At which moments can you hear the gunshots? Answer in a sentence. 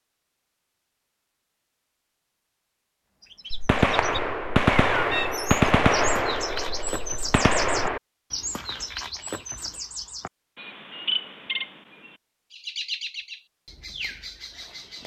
You can hear the gunshots from 3.5 to 8.0 s.